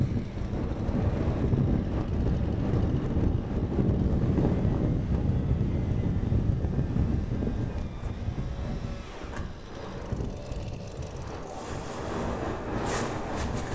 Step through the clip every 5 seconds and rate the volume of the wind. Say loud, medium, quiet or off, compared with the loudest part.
loud, loud, medium.